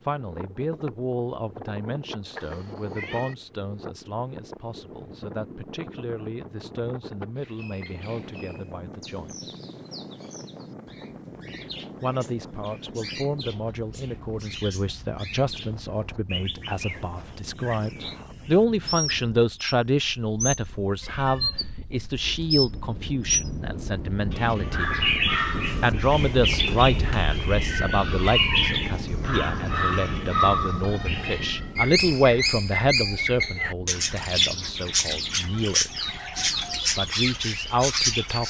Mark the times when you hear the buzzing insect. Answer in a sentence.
The buzzing insect can't be heard in this clip.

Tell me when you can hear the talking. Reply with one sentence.
The talking can be heard from 0.1 to 9.5 s, from 12.0 to 24.9 s, from 25.8 to 35.9 s and from 36.8 to 38.4 s.